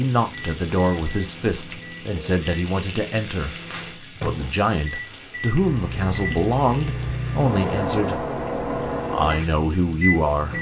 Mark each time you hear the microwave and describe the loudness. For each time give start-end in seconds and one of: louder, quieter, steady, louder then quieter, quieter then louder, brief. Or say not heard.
0.1-10.5 louder.